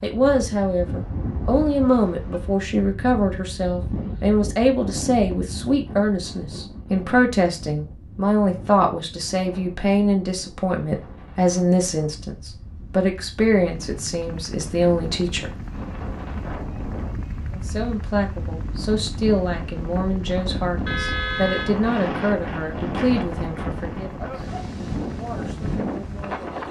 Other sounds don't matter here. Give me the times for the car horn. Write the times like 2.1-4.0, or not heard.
0.8-2.6, 20.9-21.7.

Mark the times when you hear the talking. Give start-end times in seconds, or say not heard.
0.0-15.5, 17.5-26.6.